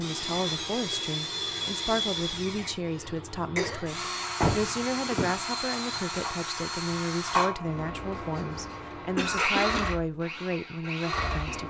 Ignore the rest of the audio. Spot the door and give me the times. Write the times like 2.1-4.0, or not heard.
4.4-5.4.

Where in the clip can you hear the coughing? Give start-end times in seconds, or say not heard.
2.9-3.9, 9.2-9.9.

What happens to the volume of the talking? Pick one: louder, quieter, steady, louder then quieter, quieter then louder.
steady.